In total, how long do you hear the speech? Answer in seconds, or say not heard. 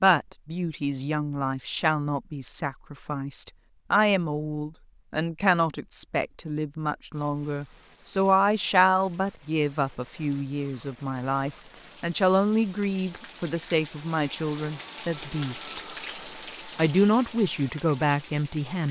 18 s.